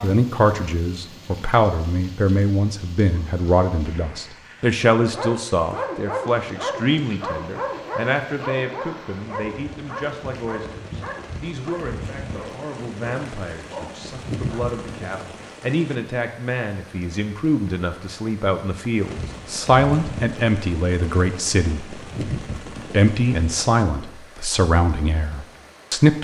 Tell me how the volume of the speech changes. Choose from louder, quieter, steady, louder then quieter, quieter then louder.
quieter then louder.